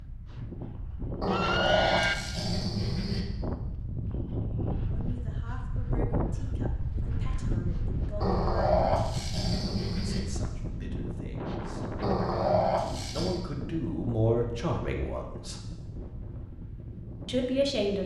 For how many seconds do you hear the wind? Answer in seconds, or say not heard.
18 s.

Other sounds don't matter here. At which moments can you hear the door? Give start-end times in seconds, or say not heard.
not heard.